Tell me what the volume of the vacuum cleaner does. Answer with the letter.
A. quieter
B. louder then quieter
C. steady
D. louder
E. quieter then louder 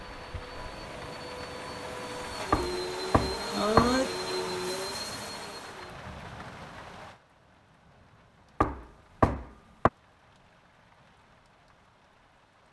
D.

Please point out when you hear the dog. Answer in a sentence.
The dog can't be heard in this clip.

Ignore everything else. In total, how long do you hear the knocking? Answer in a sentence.
You can hear the knocking for 3 seconds altogether.